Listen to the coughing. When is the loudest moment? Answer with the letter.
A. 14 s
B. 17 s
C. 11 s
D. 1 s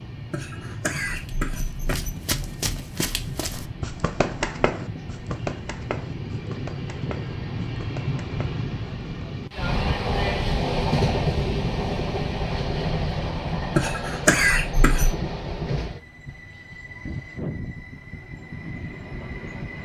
A.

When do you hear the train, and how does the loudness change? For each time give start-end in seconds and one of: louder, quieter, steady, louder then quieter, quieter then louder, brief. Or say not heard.
0.0-19.7 louder then quieter.